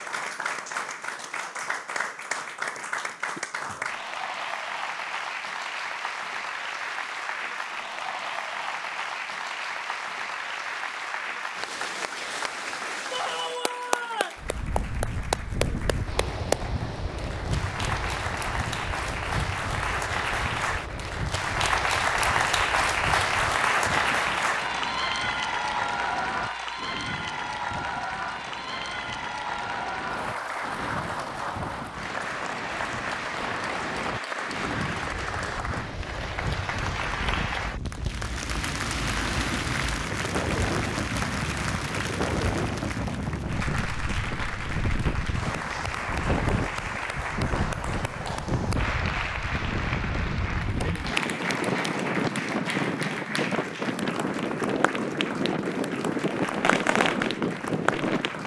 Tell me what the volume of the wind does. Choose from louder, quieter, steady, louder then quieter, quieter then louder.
louder.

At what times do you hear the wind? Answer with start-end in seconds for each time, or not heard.
14.3-58.4.